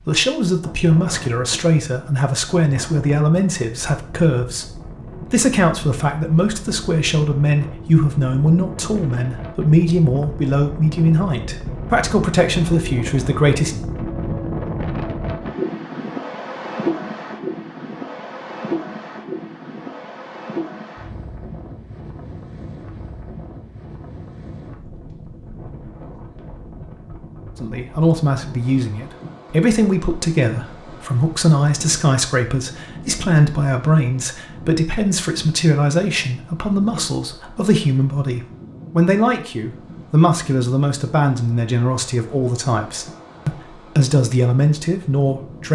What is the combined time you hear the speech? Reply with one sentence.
You can hear the speech for 32 seconds altogether.